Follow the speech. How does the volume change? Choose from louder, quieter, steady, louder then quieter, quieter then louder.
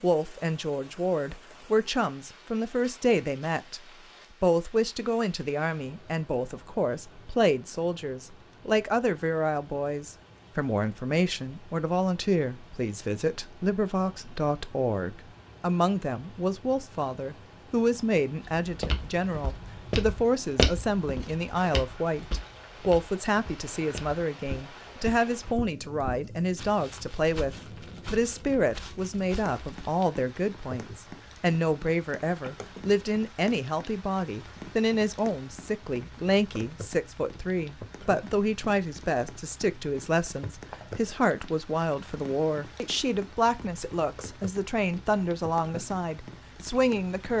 steady.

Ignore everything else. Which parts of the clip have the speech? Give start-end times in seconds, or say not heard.
0.0-3.8, 4.4-47.3.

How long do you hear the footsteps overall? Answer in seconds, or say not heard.
11 s.